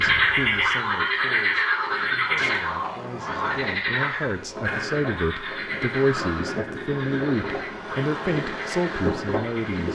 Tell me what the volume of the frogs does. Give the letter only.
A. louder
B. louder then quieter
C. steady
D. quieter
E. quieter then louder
D.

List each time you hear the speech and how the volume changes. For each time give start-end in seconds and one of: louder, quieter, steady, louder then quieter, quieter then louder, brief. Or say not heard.
0.0-9.9 louder.